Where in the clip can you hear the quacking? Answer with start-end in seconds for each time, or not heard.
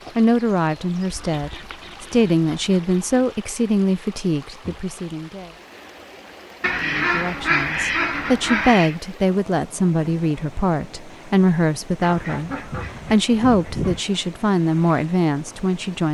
1.1-3.2, 6.6-8.9, 12.0-14.0.